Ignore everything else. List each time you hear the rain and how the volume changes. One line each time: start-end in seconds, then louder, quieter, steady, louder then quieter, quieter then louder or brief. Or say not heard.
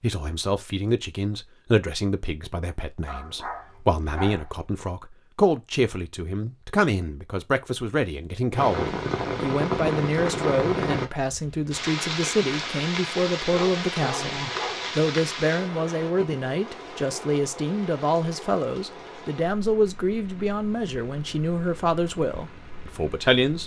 8.5-23.6 quieter.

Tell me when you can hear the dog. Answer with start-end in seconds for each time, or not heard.
3.0-4.9, 13.4-14.9.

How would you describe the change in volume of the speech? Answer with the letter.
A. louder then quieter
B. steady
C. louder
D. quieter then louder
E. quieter
B.